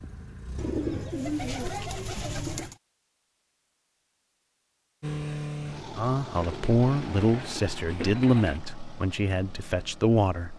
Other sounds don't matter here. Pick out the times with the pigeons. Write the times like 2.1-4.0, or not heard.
0.6-2.8, 6.3-8.6.